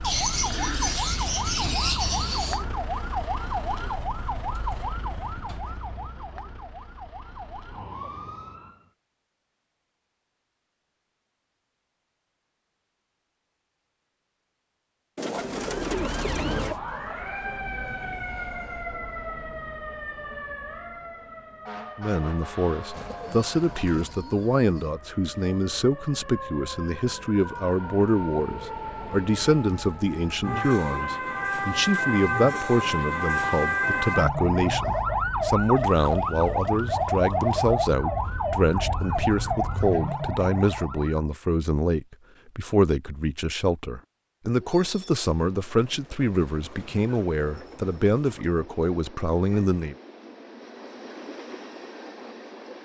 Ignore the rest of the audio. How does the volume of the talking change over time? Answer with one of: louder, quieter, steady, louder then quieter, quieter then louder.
steady.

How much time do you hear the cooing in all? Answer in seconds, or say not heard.
11 s.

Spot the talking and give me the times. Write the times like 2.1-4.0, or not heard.
21.9-50.0.